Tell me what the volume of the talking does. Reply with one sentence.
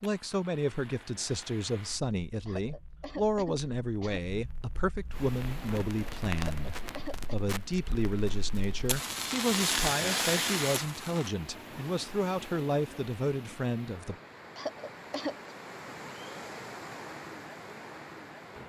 The volume of the talking stays about the same.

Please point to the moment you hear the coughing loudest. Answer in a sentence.
The volume of the coughing peaks at 15 seconds.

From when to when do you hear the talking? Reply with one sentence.
The talking can be heard from 0.0 to 14.2 s.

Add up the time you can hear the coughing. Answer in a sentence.
You can hear the coughing for 4 seconds altogether.